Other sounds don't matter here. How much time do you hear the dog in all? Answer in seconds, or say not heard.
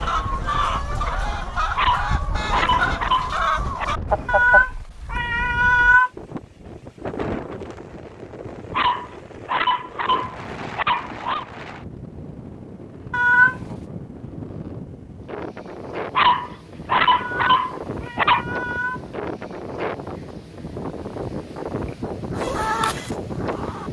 7 s.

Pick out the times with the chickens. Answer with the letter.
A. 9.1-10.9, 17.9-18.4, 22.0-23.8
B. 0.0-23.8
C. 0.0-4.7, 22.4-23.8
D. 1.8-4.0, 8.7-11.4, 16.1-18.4
C.